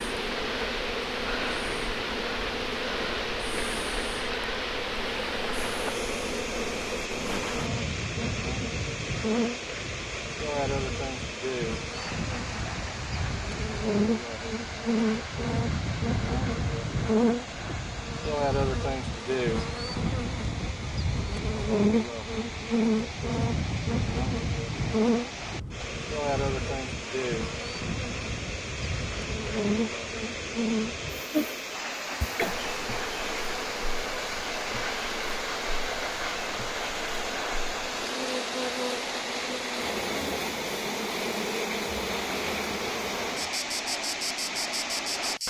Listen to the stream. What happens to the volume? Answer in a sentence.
The loudness of the stream goes down, then up.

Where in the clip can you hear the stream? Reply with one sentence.
You can hear the stream from 0.0 to 45.4 s.